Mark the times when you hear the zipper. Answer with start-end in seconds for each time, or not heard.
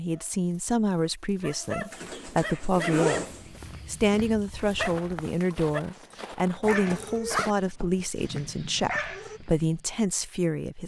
1.9-3.5, 6.6-7.5.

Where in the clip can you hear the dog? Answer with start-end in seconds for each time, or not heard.
0.1-9.4.